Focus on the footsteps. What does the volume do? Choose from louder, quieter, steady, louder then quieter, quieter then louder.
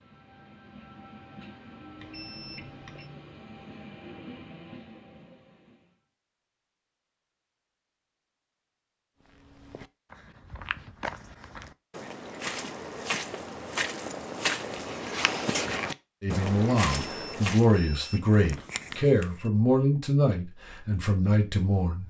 louder.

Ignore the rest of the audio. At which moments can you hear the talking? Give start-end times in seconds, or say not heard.
16.2-22.0.